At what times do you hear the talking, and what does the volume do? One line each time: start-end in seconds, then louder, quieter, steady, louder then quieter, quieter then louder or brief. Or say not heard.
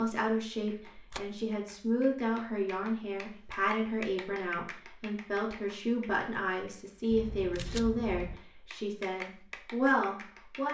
0.0-10.6 steady.